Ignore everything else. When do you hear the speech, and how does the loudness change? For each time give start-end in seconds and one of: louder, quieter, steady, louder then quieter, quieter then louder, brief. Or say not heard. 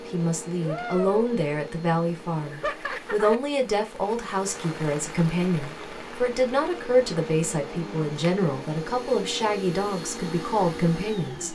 0.1-11.4 steady.